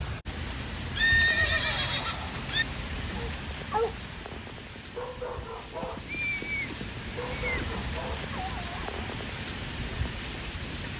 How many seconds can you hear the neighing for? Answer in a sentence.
You can hear the neighing for 4 seconds altogether.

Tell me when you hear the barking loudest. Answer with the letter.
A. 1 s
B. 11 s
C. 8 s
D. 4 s
D.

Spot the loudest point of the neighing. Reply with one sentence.
The loudest moment of the neighing is at 1 second.